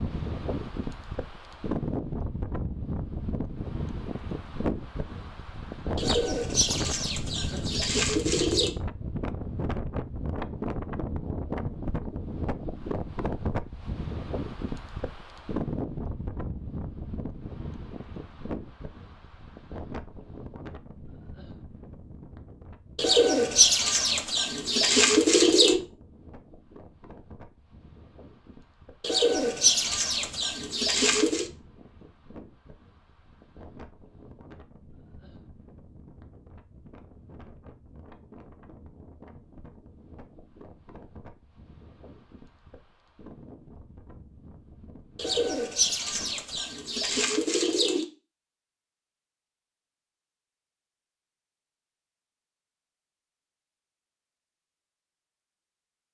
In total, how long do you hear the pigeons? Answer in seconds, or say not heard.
11 s.